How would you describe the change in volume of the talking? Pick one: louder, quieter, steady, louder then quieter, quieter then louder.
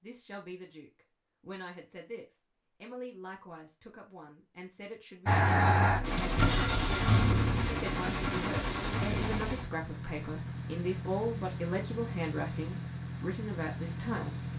louder.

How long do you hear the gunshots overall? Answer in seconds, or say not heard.
4 s.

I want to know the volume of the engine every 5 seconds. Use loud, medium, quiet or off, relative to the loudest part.
off, loud, medium.